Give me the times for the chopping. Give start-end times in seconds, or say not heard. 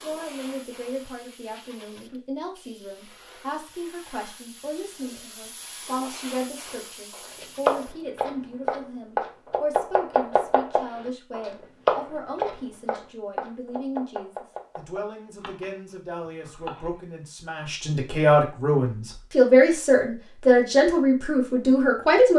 7.2-17.0.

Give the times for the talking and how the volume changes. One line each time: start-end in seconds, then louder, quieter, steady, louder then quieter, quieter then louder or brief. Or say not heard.
0.0-22.3 louder.